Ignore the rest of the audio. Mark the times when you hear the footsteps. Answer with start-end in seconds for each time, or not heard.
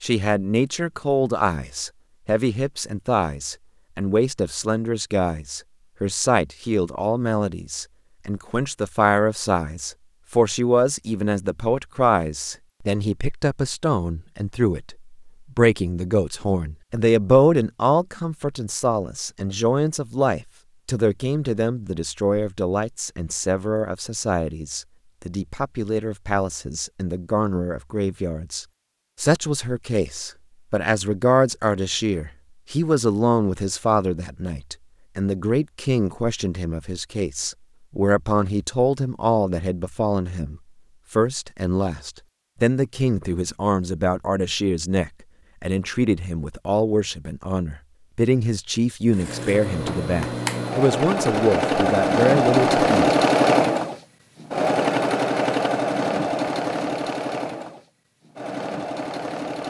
not heard.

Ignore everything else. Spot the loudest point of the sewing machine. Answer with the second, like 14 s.
53 s.